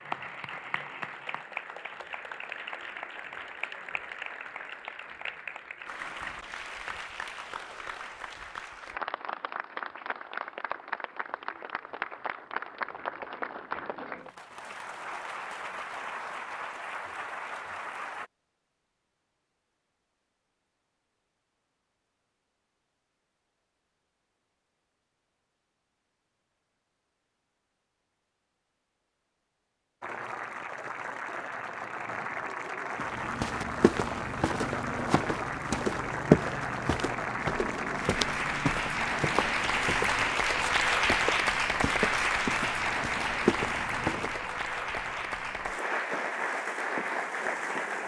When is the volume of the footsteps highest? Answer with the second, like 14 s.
36 s.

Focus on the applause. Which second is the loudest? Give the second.
41 s.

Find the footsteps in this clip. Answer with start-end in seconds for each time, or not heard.
33.0-44.4.